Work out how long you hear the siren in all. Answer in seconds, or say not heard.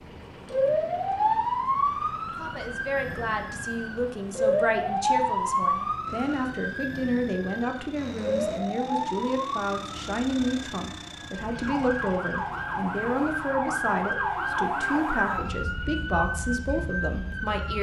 18 s.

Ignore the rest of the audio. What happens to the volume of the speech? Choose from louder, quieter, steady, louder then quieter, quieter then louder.
steady.